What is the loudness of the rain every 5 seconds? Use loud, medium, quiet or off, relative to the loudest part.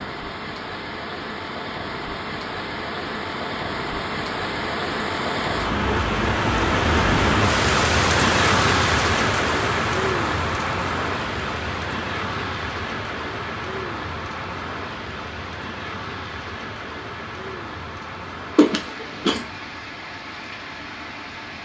medium, loud, medium, quiet, quiet.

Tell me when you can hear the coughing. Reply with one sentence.
You can hear the coughing from 18.6 to 19.4 s.